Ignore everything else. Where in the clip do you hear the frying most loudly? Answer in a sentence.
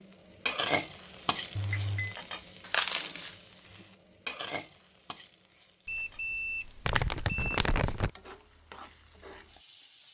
The volume of the frying peaks at 1 second.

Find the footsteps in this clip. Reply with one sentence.
You can't hear the footsteps here.